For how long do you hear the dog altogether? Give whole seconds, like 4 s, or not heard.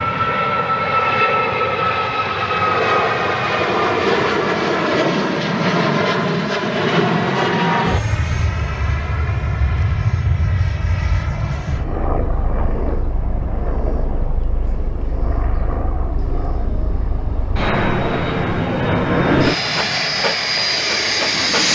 2 s.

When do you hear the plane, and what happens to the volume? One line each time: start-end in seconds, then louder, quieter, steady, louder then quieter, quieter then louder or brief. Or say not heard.
0.0-21.6 quieter then louder.